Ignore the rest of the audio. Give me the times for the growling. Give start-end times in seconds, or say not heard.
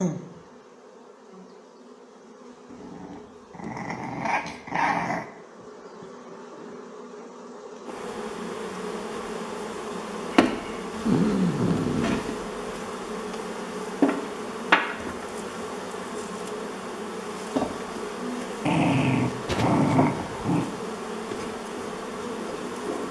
2.7-5.2, 11.0-12.2, 18.6-20.6.